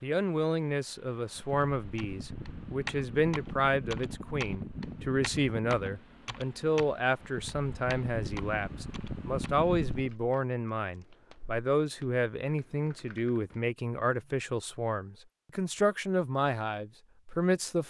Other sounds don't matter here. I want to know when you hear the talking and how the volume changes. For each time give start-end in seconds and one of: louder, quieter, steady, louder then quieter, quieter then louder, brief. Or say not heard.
0.0-17.8 steady.